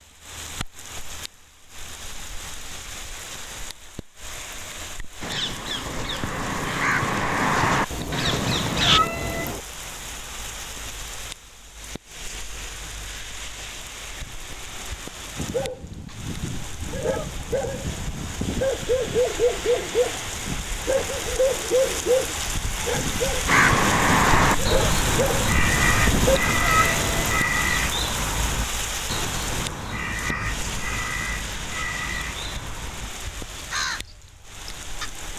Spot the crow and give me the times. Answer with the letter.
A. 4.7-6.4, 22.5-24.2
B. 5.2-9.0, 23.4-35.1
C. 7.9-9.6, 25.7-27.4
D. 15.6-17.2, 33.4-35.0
B.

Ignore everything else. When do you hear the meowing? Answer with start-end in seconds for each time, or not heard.
7.9-9.6, 25.7-27.4.